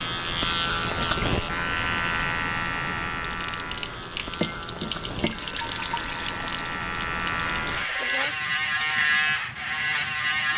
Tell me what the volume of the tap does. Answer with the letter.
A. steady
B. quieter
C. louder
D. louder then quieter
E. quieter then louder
D.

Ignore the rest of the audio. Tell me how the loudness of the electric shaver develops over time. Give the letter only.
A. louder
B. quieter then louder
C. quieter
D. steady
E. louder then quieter
B.